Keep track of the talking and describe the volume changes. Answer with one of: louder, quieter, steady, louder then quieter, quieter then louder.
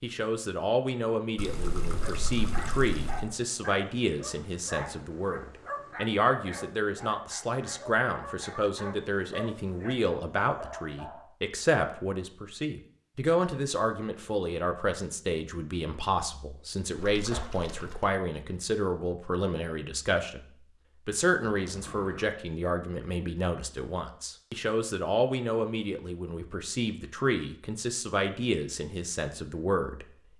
steady.